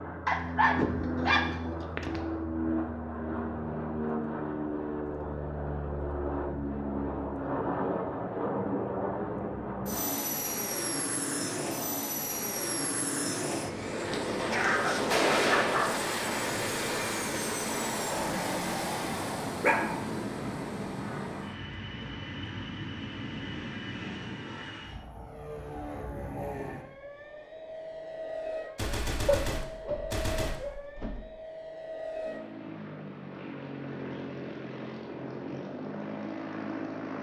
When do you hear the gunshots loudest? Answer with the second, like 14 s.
15 s.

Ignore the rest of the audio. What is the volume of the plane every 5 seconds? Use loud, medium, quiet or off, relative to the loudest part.
loud, loud, loud, loud, medium, medium, medium, medium.